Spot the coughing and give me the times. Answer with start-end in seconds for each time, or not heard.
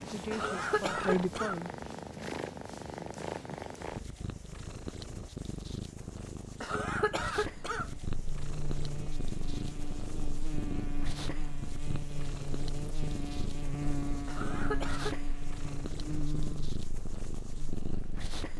0.3-1.6, 6.6-7.9, 14.2-15.2.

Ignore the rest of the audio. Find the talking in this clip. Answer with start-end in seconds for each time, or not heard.
0.0-1.7.